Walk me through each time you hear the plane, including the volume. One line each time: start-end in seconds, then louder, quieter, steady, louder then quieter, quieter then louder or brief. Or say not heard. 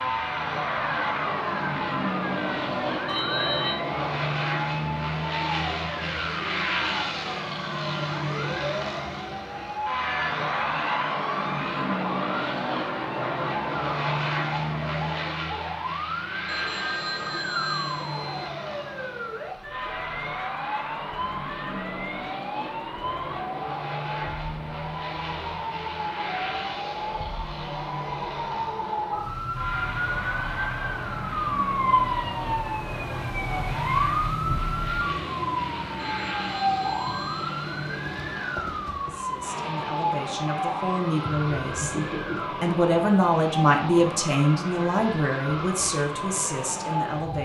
0.0-47.3 quieter.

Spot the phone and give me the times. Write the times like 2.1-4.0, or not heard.
3.0-3.8, 16.4-18.5, 36.0-38.0.